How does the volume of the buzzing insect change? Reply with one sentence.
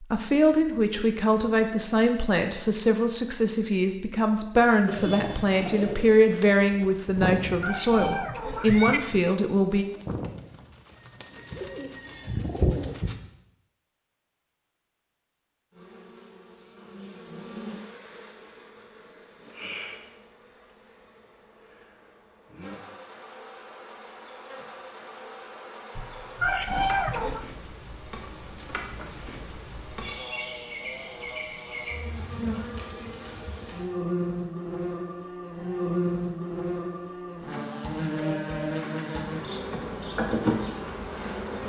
The loudness of the buzzing insect goes up.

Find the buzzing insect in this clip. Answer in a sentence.
The buzzing insect can be heard from 15.7 to 41.6 s.